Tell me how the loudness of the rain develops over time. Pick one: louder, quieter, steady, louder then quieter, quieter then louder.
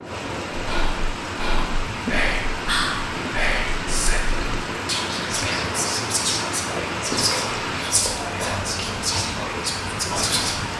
steady.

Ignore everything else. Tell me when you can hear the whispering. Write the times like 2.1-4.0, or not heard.
0.5-10.7.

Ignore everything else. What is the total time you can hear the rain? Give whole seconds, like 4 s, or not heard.
11 s.